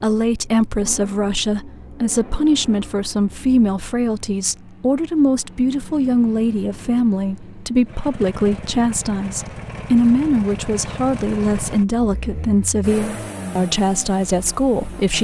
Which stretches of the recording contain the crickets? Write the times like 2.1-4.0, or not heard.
not heard.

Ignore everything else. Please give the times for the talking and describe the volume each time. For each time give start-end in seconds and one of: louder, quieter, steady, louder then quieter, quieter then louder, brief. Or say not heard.
0.0-15.1 steady.